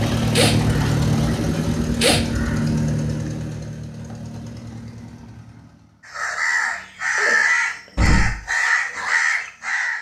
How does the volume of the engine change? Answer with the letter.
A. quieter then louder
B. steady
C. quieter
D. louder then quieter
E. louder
C.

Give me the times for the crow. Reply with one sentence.
The crow can be heard from 0.1 to 2.8 s and from 6.0 to 9.9 s.